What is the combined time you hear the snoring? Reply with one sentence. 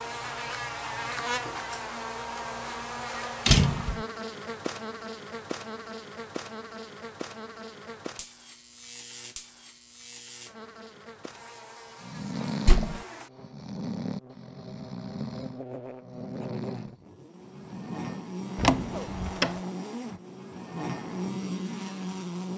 You can hear the snoring for 9 seconds altogether.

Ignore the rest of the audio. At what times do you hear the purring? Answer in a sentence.
You can't hear the purring here.